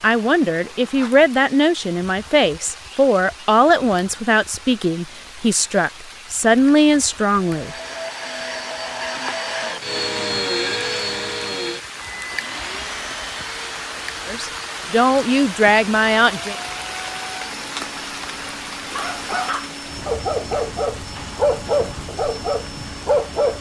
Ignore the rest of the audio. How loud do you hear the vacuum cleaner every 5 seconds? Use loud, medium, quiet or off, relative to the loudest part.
off, loud, loud, medium, medium.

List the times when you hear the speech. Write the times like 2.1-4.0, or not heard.
0.0-7.8, 14.2-16.6.